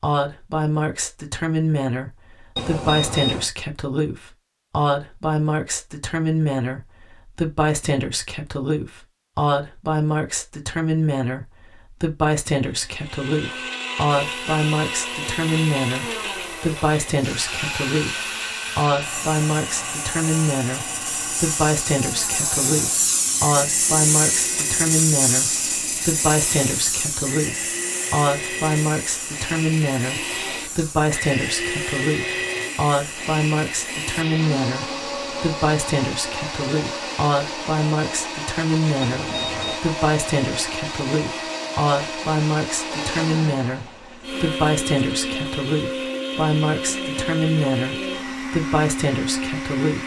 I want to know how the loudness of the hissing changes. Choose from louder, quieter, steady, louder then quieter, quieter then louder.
louder then quieter.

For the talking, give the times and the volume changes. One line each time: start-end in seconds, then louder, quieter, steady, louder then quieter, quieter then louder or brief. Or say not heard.
0.0-50.0 steady.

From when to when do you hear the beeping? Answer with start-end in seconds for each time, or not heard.
2.5-3.5, 39.0-39.8.